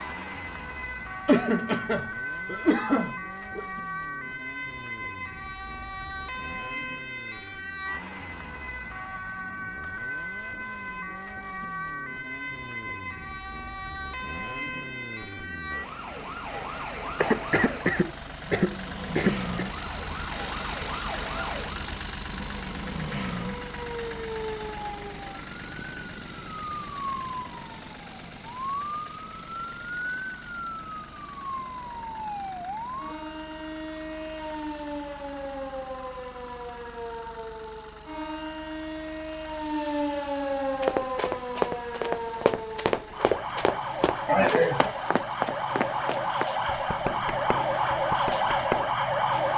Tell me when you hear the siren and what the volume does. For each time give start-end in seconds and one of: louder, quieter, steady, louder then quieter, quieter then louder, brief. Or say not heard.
0.0-49.5 louder.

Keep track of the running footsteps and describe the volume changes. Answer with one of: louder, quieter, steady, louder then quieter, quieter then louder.
quieter.